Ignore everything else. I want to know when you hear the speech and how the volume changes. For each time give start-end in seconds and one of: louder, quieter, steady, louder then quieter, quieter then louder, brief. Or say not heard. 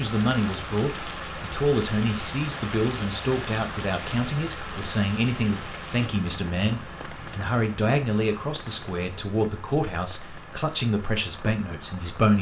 0.0-12.3 steady.